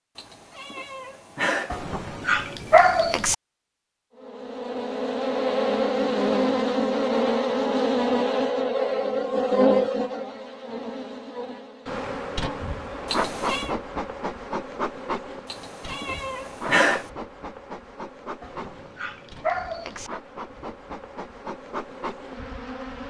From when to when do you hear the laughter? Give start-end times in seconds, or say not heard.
not heard.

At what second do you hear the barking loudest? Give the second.
3 s.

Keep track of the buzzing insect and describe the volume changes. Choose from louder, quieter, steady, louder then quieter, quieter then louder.
quieter.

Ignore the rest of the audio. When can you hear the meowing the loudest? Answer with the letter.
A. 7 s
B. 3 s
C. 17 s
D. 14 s
C.